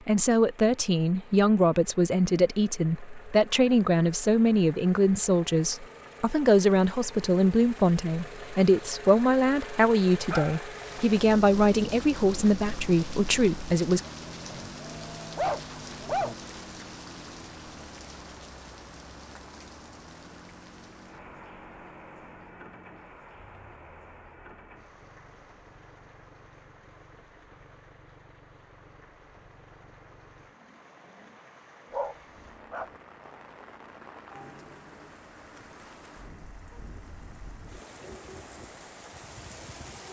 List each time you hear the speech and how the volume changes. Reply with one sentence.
You can hear the speech from 0.1 to 14.0 s, at a steady volume.